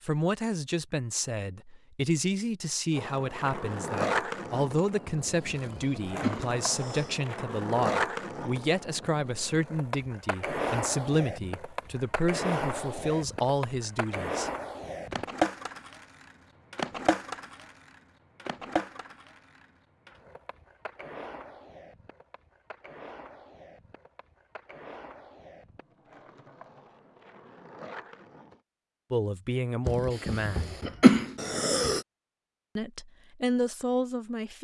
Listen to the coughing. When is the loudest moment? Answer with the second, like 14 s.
31 s.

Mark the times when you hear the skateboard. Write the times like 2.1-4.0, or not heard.
2.9-28.6.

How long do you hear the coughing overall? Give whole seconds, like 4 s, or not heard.
4 s.